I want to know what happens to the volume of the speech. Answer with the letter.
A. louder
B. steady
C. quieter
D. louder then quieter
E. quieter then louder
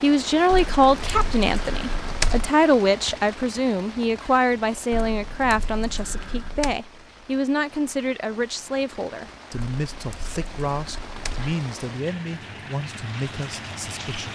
C.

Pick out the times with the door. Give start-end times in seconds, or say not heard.
not heard.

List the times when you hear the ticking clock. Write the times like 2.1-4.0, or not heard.
not heard.